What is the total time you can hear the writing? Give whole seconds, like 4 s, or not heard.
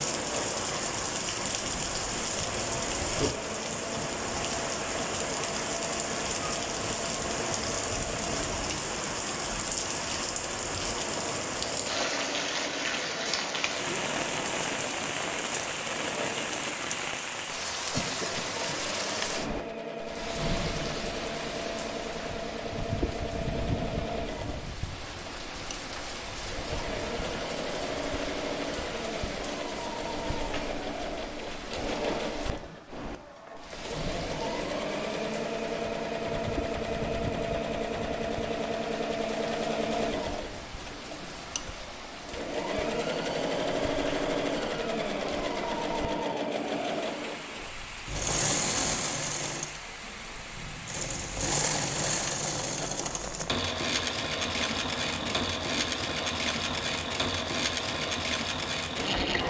not heard.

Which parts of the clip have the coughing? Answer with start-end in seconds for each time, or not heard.
17.6-18.8.